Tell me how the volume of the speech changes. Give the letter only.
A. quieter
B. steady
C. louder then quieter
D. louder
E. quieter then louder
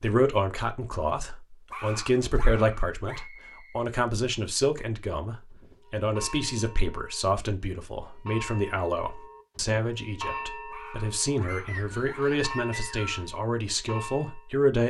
B.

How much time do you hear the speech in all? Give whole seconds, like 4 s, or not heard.
15 s.